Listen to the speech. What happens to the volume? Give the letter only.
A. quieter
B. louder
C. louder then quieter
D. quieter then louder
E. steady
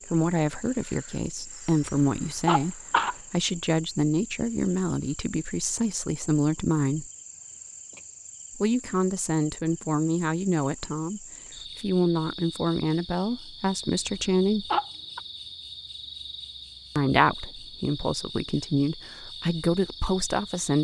E.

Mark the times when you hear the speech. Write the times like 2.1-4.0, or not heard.
0.1-7.1, 8.6-14.7, 16.9-20.7.